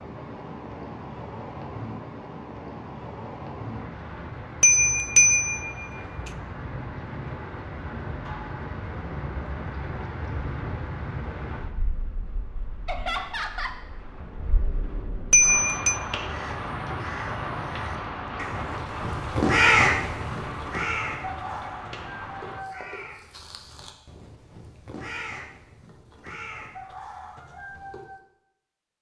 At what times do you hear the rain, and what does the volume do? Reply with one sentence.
You can hear the rain from 0.0 to 22.6 s, at a steady volume.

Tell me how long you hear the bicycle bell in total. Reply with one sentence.
You can hear the bicycle bell for 2 seconds altogether.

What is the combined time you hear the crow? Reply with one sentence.
The crow can be heard for 12 seconds in total.